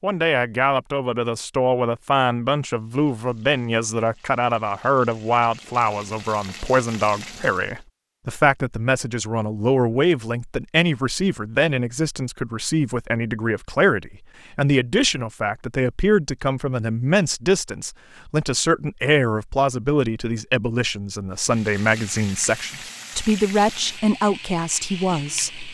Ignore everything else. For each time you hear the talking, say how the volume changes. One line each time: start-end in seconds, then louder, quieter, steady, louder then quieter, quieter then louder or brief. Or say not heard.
0.0-25.6 steady.